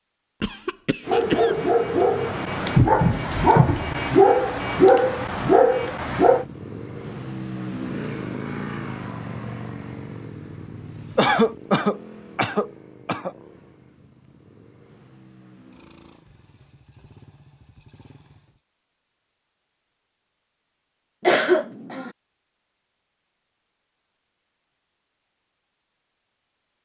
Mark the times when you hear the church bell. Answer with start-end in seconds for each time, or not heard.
not heard.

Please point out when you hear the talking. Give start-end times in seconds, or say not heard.
not heard.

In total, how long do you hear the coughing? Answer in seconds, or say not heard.
4 s.